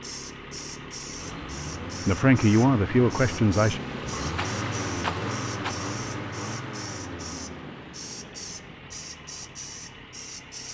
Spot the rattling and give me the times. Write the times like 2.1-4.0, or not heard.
4.3-5.8.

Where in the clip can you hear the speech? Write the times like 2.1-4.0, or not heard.
2.0-3.8.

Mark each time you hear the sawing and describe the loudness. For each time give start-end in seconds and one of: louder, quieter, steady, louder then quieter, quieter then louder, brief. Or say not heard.
not heard.